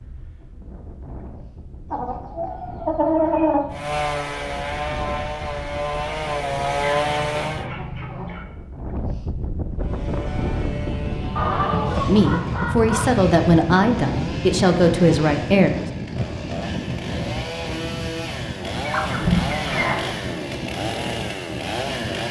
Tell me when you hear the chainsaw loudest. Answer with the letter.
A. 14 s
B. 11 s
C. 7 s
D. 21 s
C.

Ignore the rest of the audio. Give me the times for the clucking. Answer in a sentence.
You can hear the clucking from 1.9 to 3.6 s, from 6.8 to 8.4 s, from 11.3 to 13.2 s and from 18.8 to 20.1 s.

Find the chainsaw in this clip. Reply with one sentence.
You can hear the chainsaw from 3.7 to 7.7 s and from 9.8 to 22.2 s.